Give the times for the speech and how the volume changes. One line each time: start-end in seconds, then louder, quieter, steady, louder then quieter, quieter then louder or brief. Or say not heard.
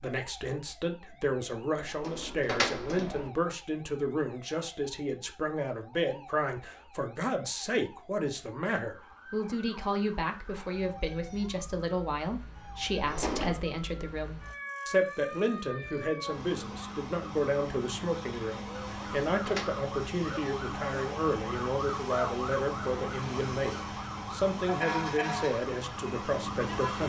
0.0-27.0 steady.